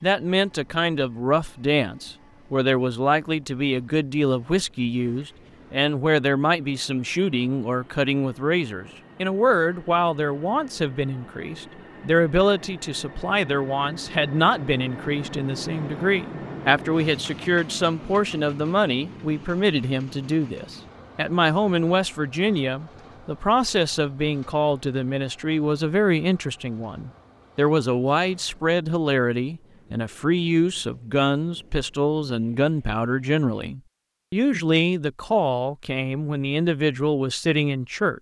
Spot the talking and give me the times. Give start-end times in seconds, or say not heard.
0.0-38.1.